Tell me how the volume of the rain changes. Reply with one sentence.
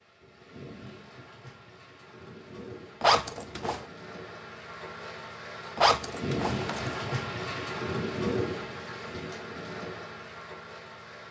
The loudness of the rain goes up, then down.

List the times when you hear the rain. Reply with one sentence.
You can hear the rain from 0.0 to 11.2 s.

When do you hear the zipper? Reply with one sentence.
The zipper can be heard from 3.0 to 3.9 s and from 5.8 to 7.1 s.